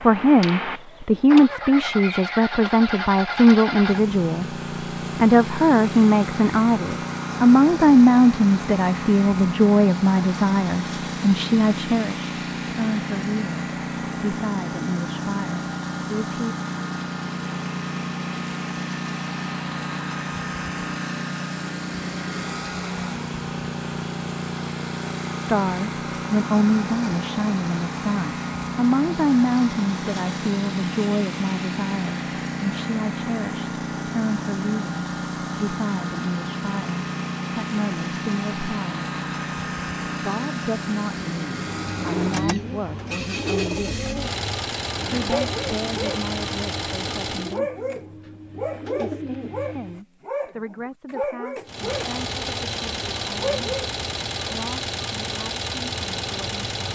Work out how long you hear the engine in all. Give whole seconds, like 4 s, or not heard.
53 s.